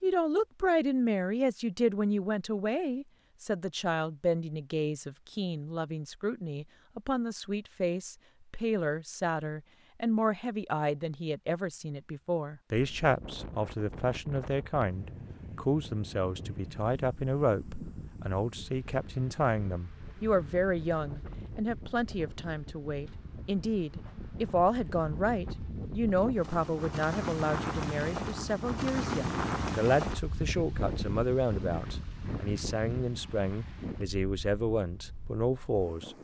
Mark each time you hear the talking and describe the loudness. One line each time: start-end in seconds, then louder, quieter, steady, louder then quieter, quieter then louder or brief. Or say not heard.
0.0-36.1 steady.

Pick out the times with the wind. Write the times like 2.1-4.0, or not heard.
12.7-36.2.